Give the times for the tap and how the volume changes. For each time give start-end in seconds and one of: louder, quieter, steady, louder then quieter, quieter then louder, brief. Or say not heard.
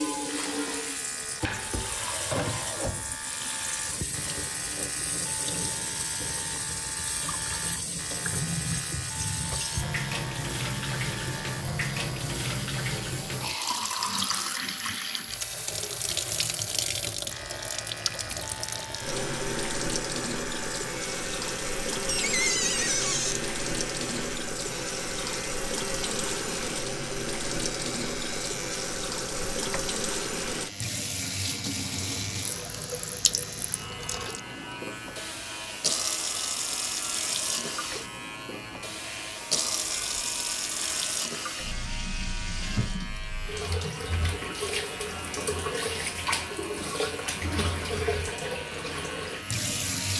0.0-50.1 steady.